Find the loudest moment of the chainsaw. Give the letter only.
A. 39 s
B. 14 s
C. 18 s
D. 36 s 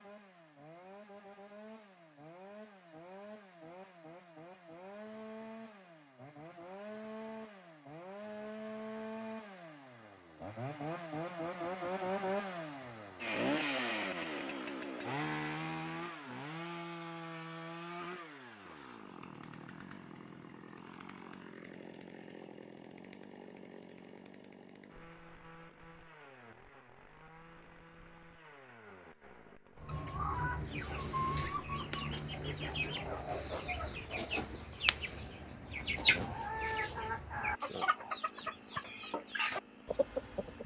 B.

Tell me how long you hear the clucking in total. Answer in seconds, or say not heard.
11 s.